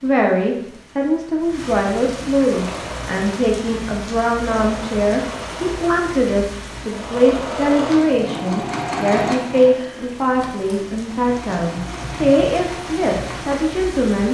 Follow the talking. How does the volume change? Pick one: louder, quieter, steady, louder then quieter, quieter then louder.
steady.